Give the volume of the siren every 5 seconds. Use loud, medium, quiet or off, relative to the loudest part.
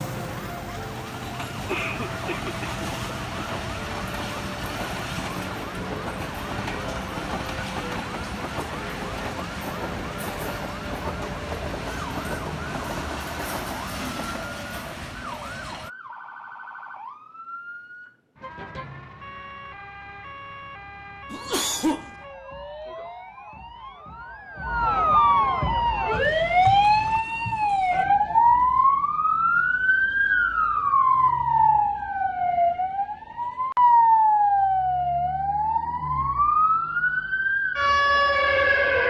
quiet, quiet, quiet, quiet, quiet, loud, loud, loud.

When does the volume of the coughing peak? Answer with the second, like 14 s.
22 s.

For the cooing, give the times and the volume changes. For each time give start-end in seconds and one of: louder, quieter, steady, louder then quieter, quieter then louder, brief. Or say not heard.
not heard.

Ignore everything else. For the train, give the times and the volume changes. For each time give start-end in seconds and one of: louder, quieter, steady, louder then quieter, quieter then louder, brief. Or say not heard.
0.0-15.9 steady.